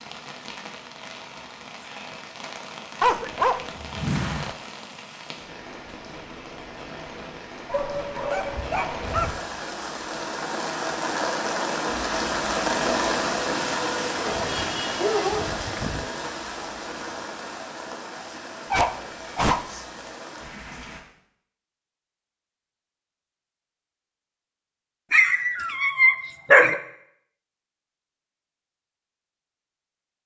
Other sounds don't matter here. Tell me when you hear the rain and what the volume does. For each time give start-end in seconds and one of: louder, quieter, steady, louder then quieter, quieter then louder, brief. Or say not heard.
0.0-21.0 louder then quieter.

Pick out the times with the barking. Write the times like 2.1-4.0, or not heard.
3.0-4.5, 7.7-9.4, 14.2-16.1, 18.7-19.9, 25.1-26.8.